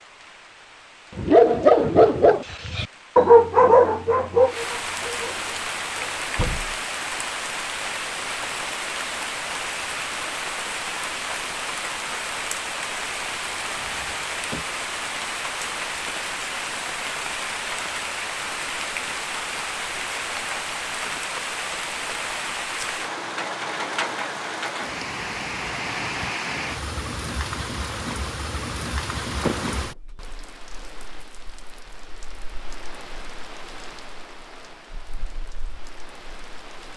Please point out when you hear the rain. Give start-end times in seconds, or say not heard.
0.0-36.9.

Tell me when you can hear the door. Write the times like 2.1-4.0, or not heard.
6.3-6.8, 13.8-14.7, 29.4-29.9.